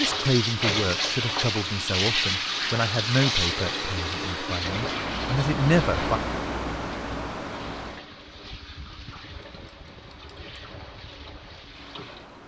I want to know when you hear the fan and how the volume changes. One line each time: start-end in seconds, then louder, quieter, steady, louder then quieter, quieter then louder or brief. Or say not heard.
4.6-12.4 quieter.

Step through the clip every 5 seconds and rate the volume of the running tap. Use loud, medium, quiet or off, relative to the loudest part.
loud, quiet, quiet.